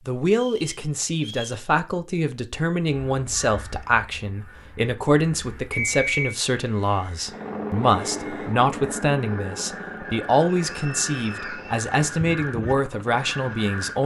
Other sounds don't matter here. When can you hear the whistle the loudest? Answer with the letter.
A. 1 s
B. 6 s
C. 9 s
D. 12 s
B.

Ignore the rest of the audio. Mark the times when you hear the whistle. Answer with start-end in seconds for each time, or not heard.
0.3-1.6, 5.7-6.3, 10.7-12.4.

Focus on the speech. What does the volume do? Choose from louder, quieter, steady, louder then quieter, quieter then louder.
steady.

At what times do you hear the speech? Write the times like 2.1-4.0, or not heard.
0.1-14.0.